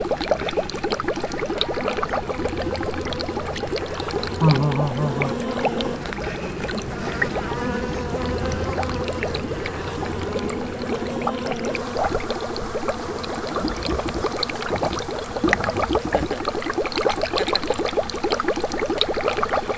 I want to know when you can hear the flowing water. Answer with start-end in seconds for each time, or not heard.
0.0-19.7.